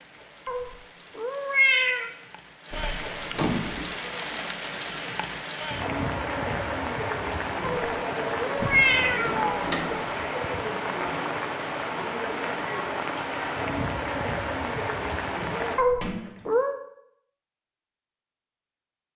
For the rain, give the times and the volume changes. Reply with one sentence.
You can hear the rain from 0.0 to 15.8 s, getting louder.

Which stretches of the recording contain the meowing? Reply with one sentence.
You can hear the meowing from 0.5 to 2.1 s, from 7.6 to 9.7 s and from 15.8 to 16.8 s.